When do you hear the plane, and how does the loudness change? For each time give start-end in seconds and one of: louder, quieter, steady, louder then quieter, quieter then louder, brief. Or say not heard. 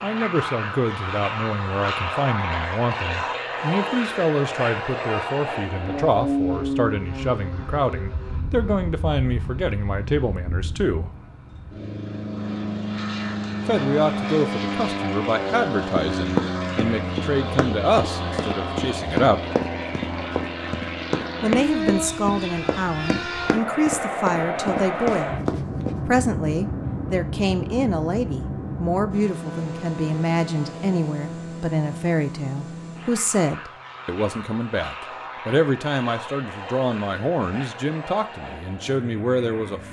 0.0-39.8 quieter.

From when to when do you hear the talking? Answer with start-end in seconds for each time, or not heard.
0.0-11.1, 13.7-19.4, 21.4-25.4, 26.1-39.8.